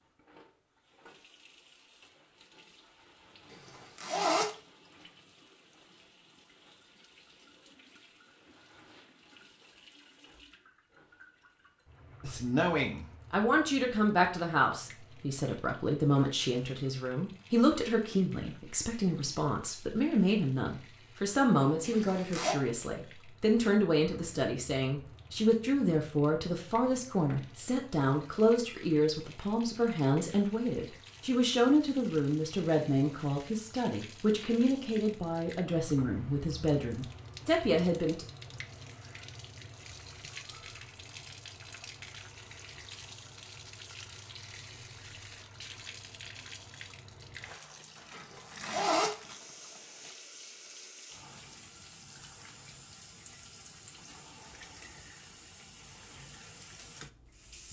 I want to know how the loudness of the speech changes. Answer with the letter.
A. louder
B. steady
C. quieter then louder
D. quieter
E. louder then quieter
B.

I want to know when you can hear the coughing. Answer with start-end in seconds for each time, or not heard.
not heard.